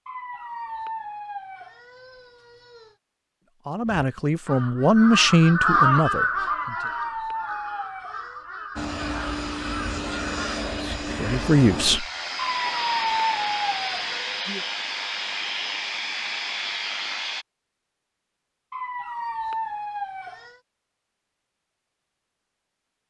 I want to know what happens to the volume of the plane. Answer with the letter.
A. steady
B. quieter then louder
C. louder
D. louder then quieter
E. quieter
A.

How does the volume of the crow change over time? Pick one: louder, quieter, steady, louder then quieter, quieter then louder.
louder then quieter.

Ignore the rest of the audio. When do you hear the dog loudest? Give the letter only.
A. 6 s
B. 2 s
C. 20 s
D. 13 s
D.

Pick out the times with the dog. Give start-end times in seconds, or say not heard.
0.1-3.0, 6.5-8.4, 12.3-14.4, 18.7-20.6.